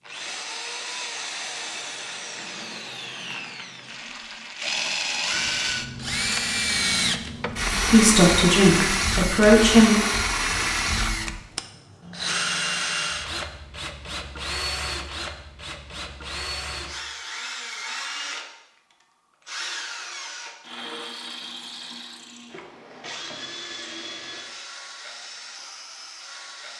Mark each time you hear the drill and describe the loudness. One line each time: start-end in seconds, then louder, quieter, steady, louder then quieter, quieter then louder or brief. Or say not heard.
0.0-26.7 louder then quieter.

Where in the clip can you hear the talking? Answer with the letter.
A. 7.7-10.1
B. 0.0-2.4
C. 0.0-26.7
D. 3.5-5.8
A.